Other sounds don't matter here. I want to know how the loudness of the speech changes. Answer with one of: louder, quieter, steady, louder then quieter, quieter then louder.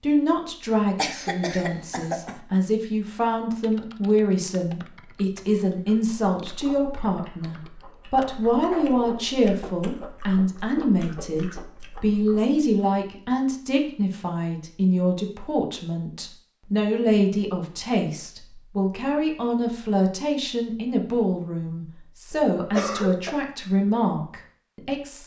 steady.